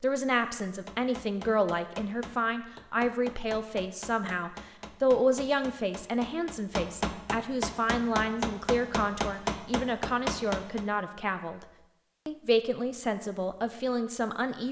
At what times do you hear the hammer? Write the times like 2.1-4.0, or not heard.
0.7-10.8.